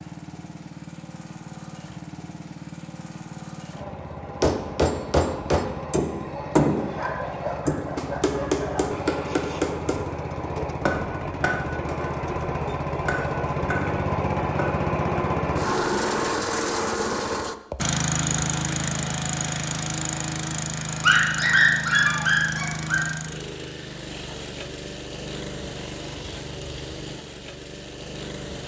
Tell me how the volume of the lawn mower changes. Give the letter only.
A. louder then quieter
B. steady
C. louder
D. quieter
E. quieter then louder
A.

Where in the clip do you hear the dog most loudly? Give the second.
22 s.